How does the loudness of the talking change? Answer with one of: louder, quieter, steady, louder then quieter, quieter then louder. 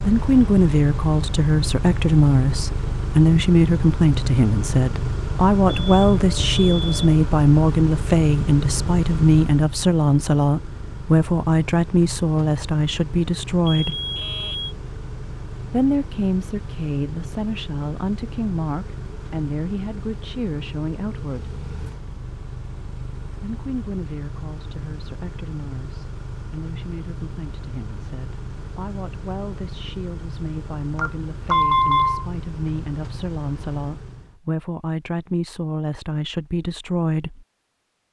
quieter then louder.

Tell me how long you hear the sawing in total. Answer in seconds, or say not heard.
not heard.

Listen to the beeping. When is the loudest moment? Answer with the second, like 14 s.
32 s.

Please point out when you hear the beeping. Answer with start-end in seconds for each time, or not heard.
5.7-7.2, 13.7-14.8, 30.9-32.2.